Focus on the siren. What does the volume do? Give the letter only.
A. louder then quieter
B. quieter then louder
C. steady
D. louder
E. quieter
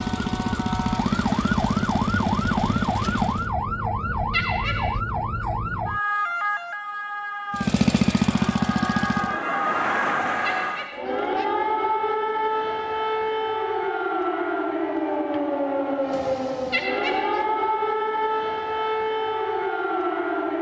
C.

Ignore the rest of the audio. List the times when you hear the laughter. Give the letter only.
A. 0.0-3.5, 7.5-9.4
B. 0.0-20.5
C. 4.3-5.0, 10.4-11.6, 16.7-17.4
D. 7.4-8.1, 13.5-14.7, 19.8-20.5
C.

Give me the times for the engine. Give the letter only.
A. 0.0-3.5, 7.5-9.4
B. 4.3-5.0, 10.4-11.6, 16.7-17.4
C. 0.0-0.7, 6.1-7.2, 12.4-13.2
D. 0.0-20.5
A.